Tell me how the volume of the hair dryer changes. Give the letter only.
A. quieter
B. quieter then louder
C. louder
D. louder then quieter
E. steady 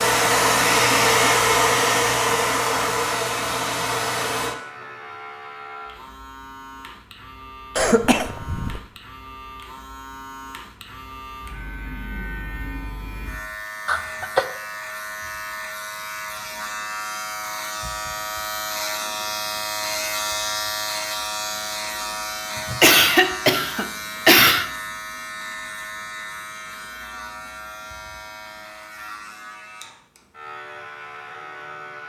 A.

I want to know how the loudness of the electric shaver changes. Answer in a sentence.
The volume of the electric shaver goes up, then down.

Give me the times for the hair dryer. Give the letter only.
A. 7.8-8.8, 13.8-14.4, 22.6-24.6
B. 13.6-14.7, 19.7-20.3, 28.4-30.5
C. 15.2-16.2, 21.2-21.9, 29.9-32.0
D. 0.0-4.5
D.